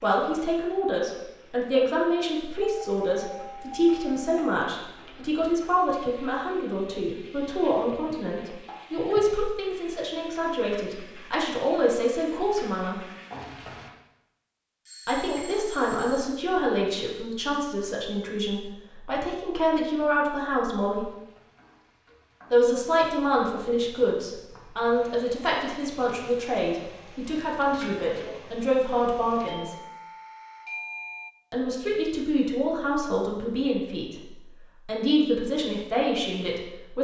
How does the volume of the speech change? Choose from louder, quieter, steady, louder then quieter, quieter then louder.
steady.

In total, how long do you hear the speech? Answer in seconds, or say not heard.
32 s.